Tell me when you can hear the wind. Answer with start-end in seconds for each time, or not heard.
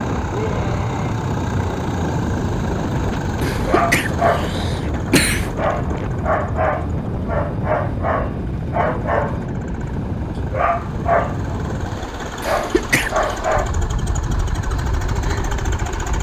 0.0-16.1.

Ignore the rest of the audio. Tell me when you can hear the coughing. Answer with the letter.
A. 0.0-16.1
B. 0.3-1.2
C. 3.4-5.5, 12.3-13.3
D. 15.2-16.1
C.